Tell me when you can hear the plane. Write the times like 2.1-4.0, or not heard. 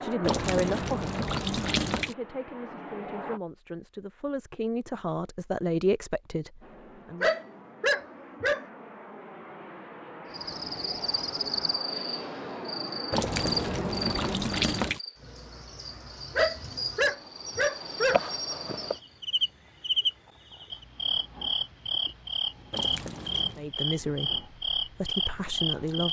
0.0-3.4, 6.6-14.4.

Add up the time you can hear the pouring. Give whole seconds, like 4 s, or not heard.
5 s.